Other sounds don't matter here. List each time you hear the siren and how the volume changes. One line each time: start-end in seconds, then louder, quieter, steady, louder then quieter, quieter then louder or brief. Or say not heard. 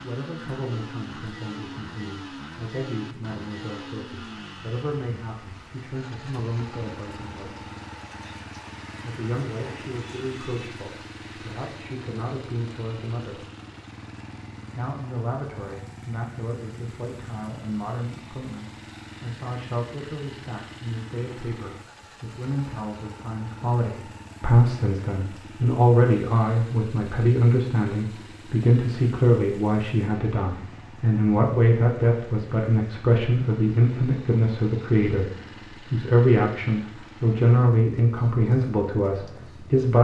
not heard.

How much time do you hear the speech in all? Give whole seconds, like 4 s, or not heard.
37 s.